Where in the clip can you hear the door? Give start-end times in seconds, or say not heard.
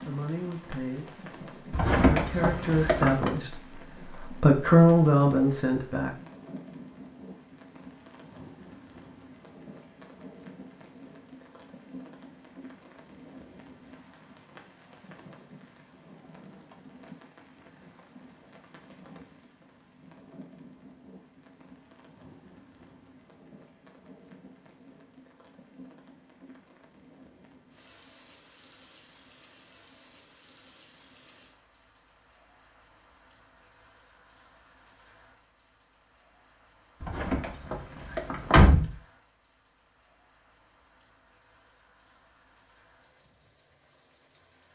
1.7-3.3, 37.0-38.9.